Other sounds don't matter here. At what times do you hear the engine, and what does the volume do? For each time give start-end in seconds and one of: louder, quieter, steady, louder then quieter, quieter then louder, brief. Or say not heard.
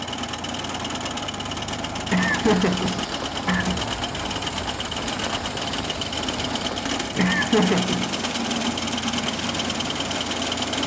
0.0-10.8 steady.